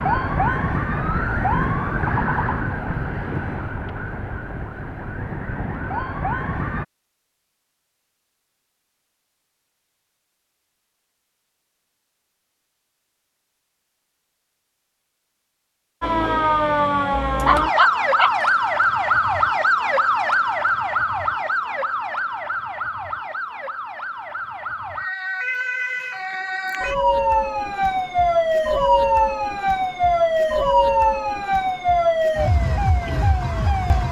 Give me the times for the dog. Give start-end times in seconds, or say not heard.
17.4-18.5.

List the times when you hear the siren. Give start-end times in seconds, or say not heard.
0.0-6.8, 16.0-34.0.